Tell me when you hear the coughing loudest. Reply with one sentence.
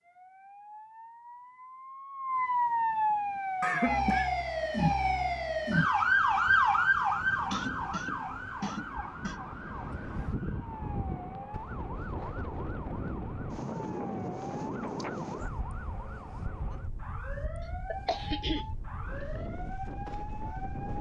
The volume of the coughing peaks at 4 seconds.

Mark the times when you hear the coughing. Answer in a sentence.
The coughing can be heard from 3.6 to 4.3 s, from 7.5 to 9.4 s and from 17.9 to 19.4 s.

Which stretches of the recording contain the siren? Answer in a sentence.
You can hear the siren from 0.0 to 20.9 s.